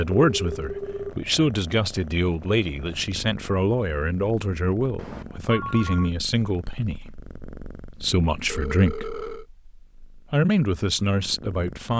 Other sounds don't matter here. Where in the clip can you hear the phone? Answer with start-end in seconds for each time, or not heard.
0.1-1.2, 5.0-6.1, 8.4-9.4.